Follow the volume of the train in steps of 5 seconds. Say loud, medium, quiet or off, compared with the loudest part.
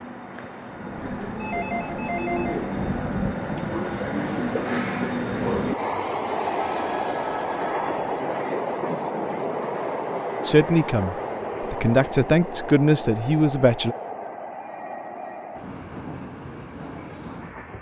loud, loud, medium, medium.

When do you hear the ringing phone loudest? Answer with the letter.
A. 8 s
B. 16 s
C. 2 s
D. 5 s
C.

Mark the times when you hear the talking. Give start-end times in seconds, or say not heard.
10.4-13.9.